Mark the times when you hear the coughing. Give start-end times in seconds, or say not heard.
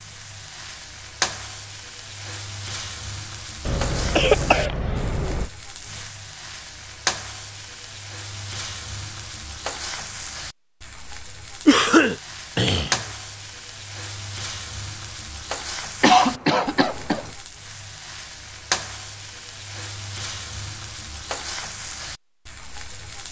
3.6-5.5, 11.7-13.1, 16.0-17.3.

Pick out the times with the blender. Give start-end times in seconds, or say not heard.
not heard.